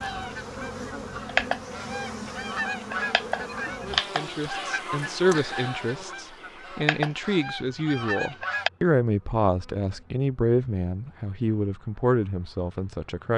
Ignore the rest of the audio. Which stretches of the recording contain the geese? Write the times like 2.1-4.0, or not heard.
0.0-8.7.